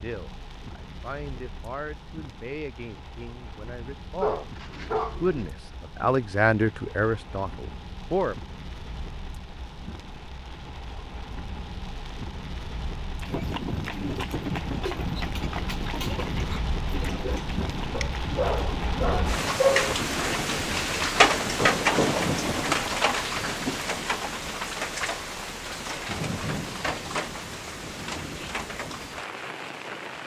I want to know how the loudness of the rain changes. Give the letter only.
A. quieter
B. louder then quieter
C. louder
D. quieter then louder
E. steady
B.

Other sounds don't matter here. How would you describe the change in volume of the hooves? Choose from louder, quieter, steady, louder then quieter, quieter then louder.
quieter.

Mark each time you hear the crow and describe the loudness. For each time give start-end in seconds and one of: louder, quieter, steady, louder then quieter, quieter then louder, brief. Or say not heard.
not heard.